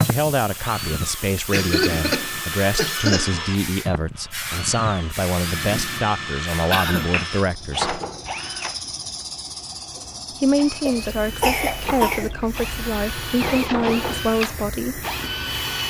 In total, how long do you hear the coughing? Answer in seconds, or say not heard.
4 s.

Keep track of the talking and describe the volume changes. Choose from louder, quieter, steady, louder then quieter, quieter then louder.
steady.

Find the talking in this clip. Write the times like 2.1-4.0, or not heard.
0.0-8.0, 10.4-15.0.